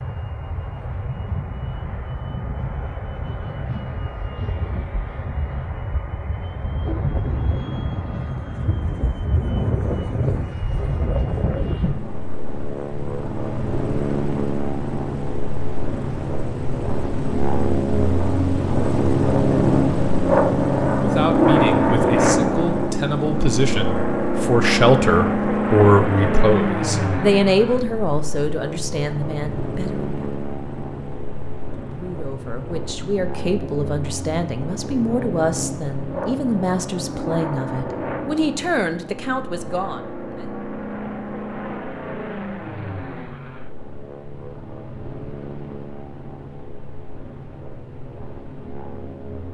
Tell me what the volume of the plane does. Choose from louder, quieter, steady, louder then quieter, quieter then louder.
louder then quieter.